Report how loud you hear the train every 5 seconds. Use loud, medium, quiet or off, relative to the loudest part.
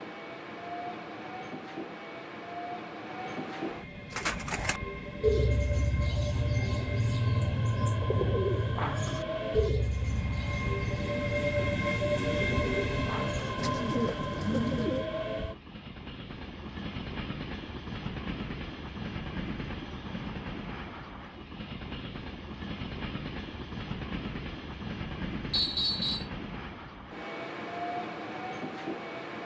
medium, medium, loud, medium, medium, medium.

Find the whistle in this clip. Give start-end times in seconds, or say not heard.
25.5-26.2.